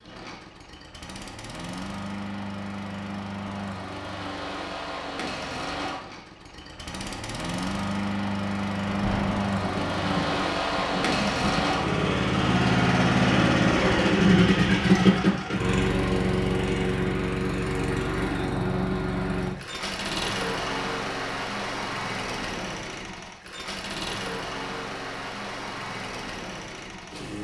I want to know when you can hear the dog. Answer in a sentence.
The dog can't be heard in this clip.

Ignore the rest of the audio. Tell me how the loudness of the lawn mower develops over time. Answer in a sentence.
The volume of the lawn mower goes up, then down.